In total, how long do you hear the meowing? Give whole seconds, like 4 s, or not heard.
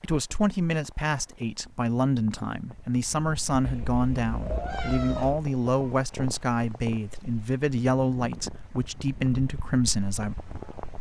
2 s.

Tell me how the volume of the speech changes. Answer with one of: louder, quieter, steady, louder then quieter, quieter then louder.
steady.